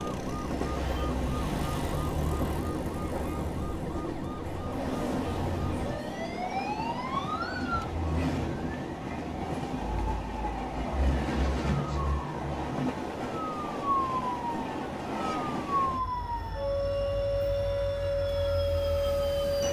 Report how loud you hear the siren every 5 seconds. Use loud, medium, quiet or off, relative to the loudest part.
medium, medium, medium, loud.